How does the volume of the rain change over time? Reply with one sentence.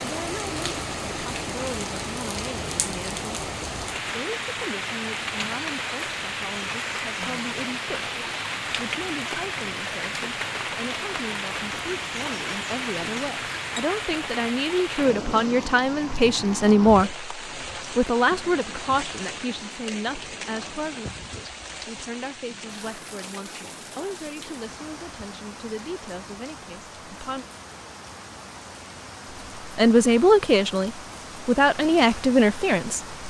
The volume of the rain goes down.